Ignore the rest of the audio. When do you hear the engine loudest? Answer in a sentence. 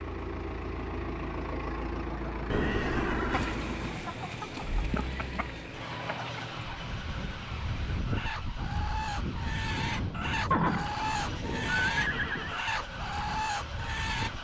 The volume of the engine peaks at 3 seconds.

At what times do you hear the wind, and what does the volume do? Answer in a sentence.
The wind can be heard from 6.8 to 14.3 s, getting quieter.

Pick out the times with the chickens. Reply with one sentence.
You can hear the chickens from 3.3 to 14.3 s.